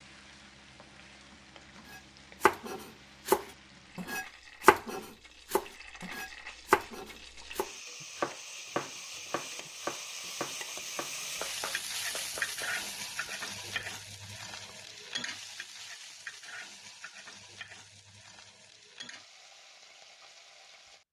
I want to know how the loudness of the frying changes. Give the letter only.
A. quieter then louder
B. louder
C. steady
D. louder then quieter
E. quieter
D.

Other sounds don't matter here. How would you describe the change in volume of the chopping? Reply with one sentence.
The loudness of the chopping goes down.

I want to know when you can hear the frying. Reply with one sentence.
You can hear the frying from 0.0 to 21.0 s.